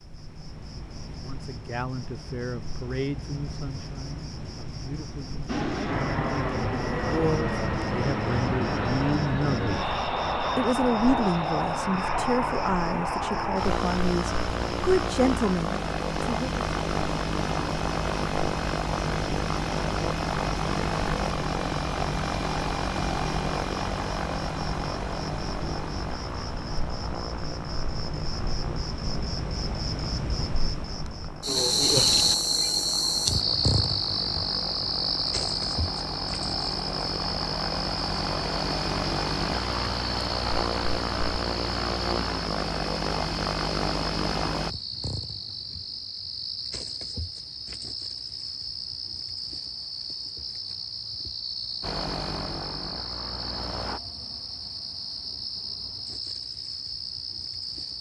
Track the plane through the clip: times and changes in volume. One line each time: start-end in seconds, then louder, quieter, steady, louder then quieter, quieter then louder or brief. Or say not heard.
5.5-44.8 quieter then louder
51.8-54.0 brief.